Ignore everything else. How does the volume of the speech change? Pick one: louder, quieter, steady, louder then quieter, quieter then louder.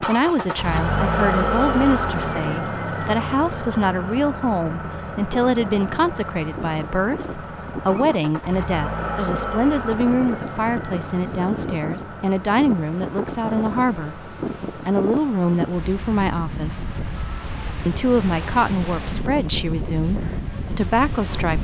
steady.